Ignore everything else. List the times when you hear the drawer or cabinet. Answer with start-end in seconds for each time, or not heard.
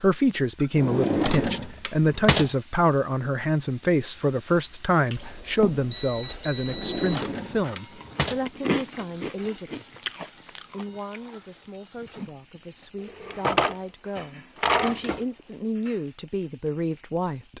0.8-2.5, 6.7-8.4, 13.1-15.2.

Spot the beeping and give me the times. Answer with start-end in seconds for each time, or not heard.
5.2-7.2, 12.8-14.3.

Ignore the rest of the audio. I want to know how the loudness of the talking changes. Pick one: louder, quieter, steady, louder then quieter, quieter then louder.
quieter then louder.